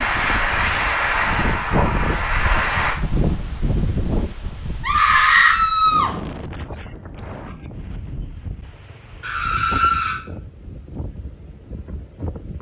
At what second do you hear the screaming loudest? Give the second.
5 s.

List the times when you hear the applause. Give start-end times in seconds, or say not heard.
0.0-3.0.